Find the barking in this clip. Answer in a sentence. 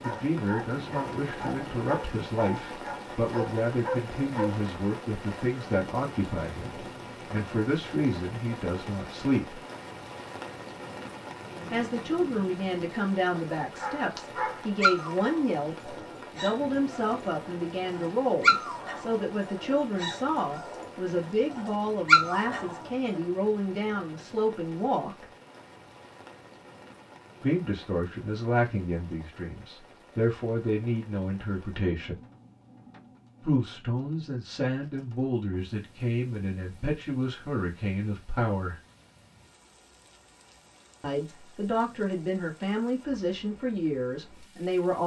You can hear the barking from 0.0 to 4.6 s and from 13.8 to 23.2 s.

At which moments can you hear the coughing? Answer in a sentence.
The coughing can't be heard in this clip.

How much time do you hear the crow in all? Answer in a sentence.
The crow can't be heard in this clip.